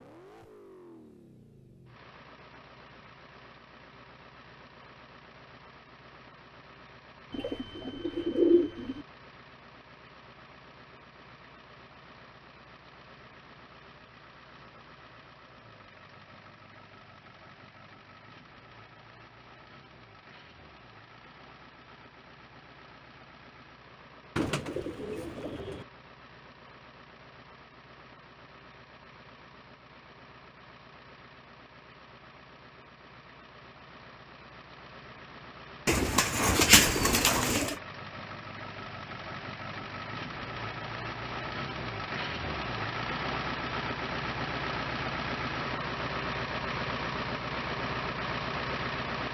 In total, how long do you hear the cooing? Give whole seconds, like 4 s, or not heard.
5 s.